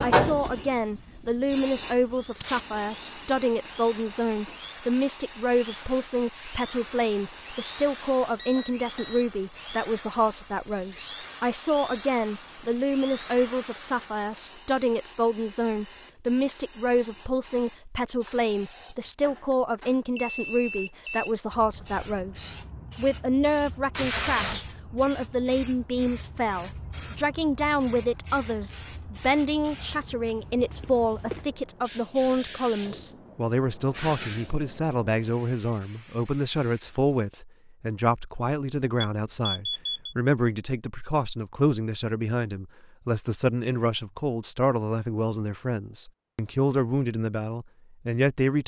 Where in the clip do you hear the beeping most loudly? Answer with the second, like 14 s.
40 s.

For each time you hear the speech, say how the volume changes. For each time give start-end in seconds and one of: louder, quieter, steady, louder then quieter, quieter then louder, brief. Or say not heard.
0.0-48.6 steady.